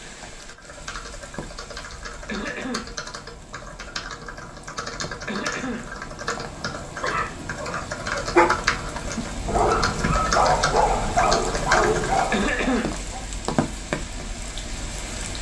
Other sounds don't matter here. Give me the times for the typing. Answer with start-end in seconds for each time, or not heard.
0.3-12.6.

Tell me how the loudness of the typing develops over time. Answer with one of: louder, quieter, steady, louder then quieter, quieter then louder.
louder.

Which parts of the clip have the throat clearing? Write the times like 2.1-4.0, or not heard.
2.2-3.0, 5.2-6.0, 12.3-12.9.